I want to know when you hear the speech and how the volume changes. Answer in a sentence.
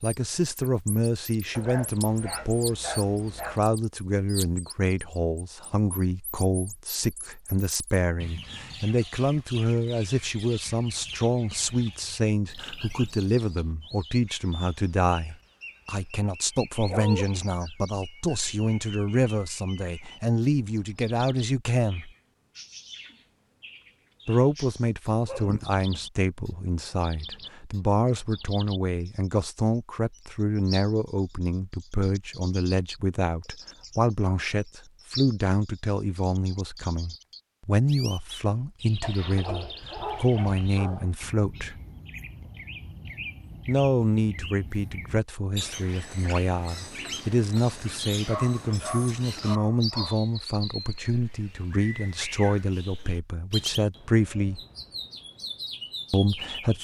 You can hear the speech from 0.0 to 22.1 s, at a steady volume; from 24.2 to 41.8 s, at a steady volume; from 43.6 to 54.6 s, at a steady volume; and briefly from 56.1 to 56.7 s.